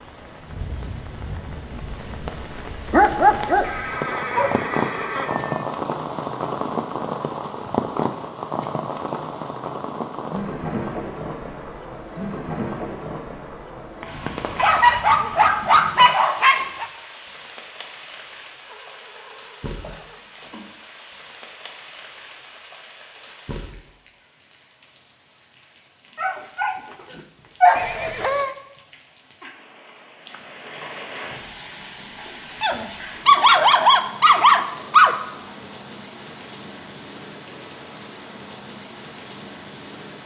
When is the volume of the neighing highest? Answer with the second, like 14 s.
28 s.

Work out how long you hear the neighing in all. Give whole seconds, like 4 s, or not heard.
5 s.